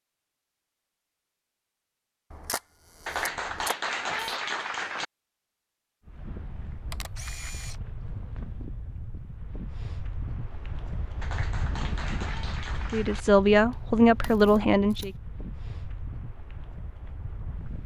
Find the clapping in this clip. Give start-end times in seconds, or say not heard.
3.0-5.0, 11.2-13.2.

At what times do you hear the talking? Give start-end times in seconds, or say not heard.
12.9-15.1.